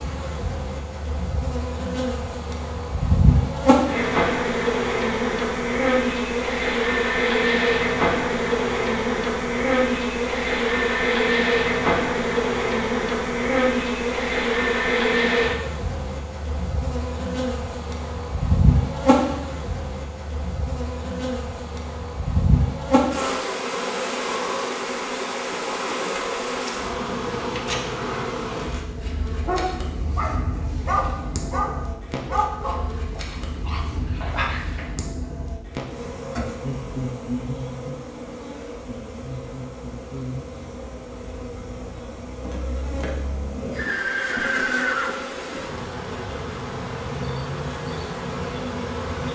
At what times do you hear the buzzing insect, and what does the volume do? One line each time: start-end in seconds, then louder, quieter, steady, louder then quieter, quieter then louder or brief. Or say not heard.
0.0-49.3 quieter.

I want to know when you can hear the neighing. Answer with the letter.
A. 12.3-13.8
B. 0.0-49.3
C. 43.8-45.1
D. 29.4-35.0
C.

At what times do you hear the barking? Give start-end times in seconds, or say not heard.
29.4-35.0.